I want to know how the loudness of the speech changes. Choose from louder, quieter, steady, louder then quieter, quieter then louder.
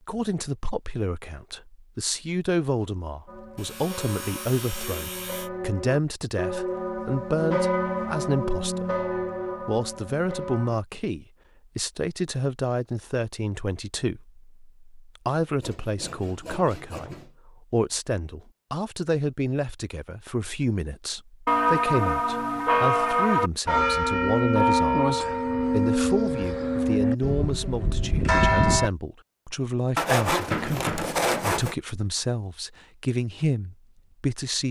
steady.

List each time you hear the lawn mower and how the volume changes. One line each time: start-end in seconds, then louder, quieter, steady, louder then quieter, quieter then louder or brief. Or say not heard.
not heard.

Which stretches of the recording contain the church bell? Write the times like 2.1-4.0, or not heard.
3.2-10.8, 21.4-28.9.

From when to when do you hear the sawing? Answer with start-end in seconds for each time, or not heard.
3.5-5.5, 15.6-17.3, 29.9-31.8.